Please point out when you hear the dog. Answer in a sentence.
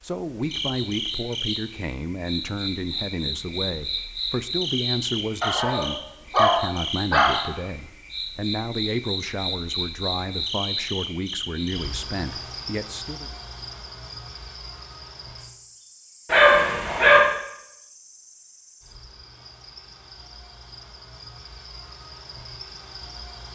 You can hear the dog from 5.4 to 7.5 s and from 16.2 to 17.2 s.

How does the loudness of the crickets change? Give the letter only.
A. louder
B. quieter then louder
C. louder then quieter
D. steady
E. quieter
E.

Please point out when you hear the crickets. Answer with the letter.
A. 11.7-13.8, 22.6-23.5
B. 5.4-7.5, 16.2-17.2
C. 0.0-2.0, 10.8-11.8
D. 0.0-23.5
D.